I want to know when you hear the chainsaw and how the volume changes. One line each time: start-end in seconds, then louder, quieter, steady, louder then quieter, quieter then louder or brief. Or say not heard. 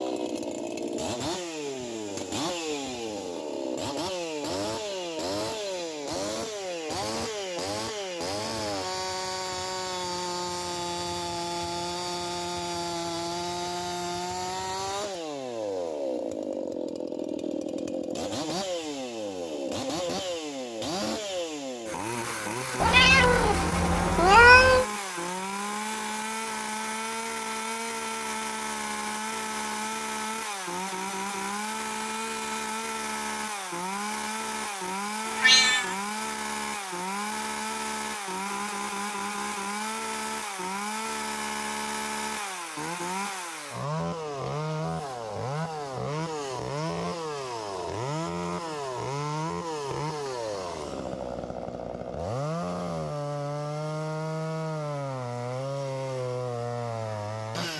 0.0-57.7 steady.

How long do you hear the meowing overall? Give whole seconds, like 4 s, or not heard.
3 s.